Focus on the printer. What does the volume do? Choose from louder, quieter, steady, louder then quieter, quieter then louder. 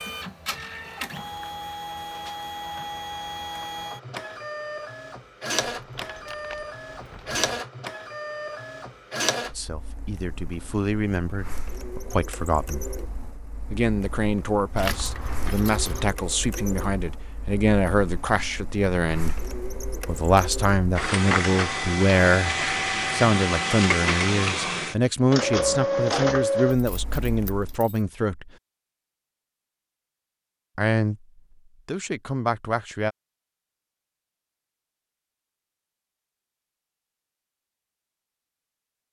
quieter then louder.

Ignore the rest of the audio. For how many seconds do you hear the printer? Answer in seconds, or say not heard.
28 s.